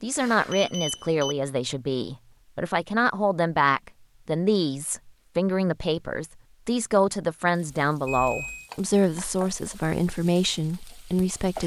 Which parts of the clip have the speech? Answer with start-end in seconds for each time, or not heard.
0.0-11.6.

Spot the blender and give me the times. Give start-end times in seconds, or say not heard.
not heard.